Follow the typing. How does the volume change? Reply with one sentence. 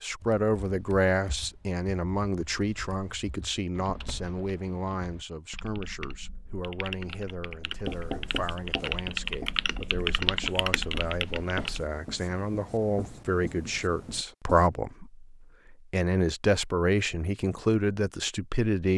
The loudness of the typing goes up.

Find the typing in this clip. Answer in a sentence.
The typing can be heard from 0.2 to 11.8 s.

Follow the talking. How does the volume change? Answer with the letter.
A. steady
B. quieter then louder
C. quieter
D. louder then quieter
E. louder
B.